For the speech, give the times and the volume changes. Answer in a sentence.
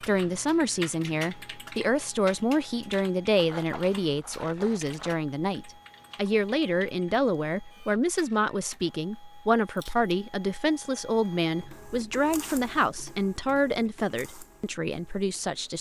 You can hear the speech from 0.0 to 15.7 s, at a steady volume.